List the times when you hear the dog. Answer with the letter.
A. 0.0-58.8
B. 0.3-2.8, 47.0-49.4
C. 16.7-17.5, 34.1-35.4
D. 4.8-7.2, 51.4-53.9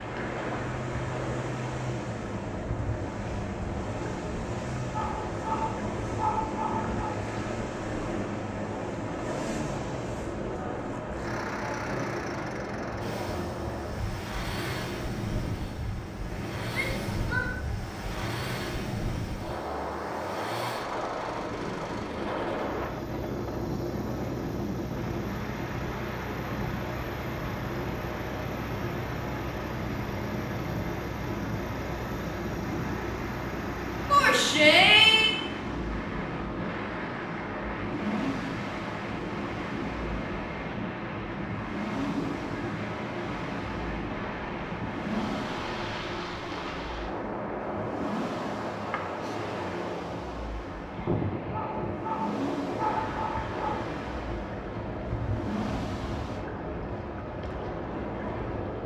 D.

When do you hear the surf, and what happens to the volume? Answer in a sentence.
You can hear the surf from 0.0 to 58.8 s, at a steady volume.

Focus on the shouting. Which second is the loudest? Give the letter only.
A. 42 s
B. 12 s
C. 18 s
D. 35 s
D.